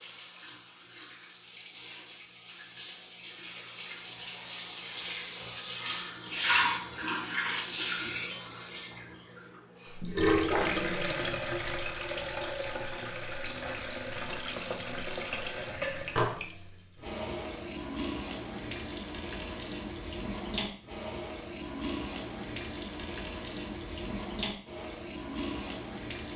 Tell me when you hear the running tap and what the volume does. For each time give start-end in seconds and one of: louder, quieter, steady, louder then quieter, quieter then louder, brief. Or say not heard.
0.0-26.3 louder then quieter.